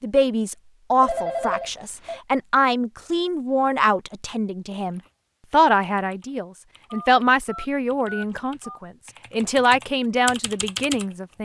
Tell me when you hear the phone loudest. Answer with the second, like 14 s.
1 s.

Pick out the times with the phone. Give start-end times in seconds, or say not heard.
1.0-2.2, 6.9-8.8.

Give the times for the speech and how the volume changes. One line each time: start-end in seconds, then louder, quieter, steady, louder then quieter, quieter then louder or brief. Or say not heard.
0.0-11.3 steady.